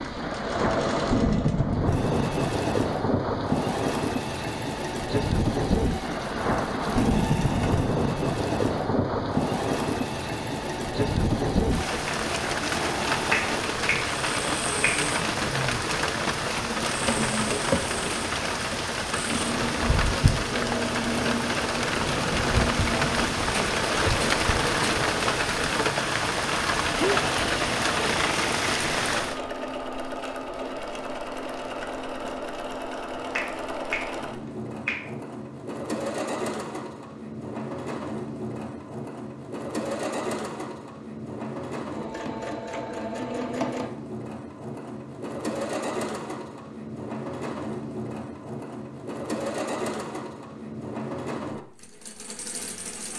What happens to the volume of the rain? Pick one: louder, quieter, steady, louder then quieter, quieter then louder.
steady.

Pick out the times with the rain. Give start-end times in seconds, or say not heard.
0.0-29.4.